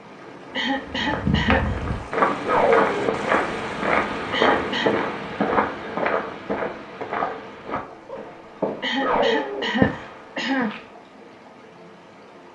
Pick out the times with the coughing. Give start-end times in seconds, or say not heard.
0.5-1.8, 4.3-5.0, 8.8-10.7.